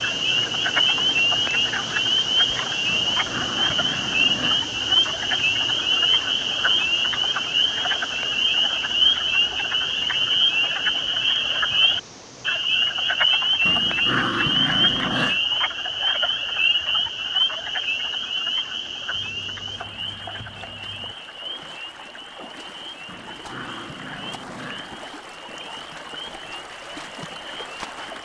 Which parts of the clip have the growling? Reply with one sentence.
You can hear the growling from 2.9 to 4.7 s, from 13.7 to 15.4 s and from 23.1 to 24.9 s.